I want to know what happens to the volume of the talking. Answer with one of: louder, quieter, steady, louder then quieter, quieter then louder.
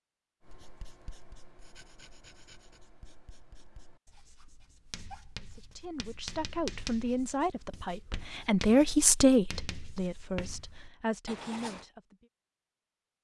louder then quieter.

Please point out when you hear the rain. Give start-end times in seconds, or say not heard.
not heard.